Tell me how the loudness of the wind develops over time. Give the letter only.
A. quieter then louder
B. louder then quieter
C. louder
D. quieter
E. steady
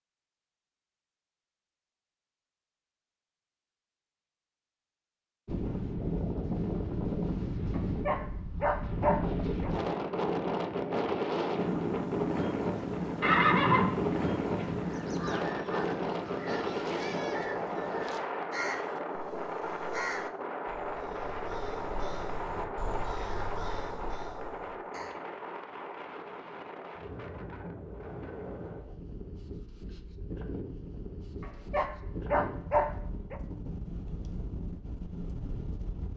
D.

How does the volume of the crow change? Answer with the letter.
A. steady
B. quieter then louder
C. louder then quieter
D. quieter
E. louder
A.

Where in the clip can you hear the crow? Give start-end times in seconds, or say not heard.
14.8-25.1.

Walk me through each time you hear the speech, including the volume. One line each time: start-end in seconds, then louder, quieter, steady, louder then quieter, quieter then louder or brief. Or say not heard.
not heard.